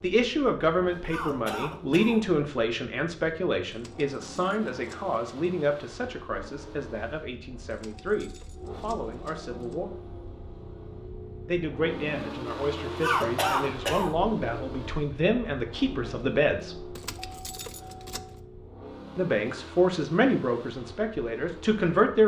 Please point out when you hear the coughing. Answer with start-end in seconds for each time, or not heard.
1.1-2.2, 13.0-14.1.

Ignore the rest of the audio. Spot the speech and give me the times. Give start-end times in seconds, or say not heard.
0.0-9.9, 11.4-16.9, 19.1-22.2.